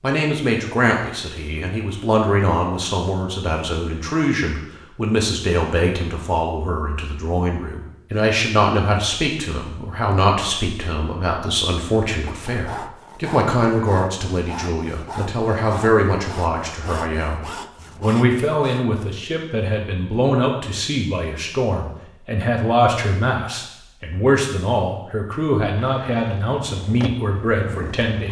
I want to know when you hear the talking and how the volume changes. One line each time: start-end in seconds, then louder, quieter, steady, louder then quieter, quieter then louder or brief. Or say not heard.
0.0-28.2 steady.